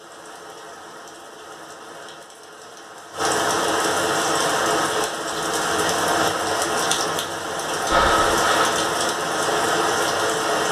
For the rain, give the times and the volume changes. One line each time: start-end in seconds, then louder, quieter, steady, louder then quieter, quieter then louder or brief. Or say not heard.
0.0-10.6 louder.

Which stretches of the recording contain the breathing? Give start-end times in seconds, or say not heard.
7.8-8.9.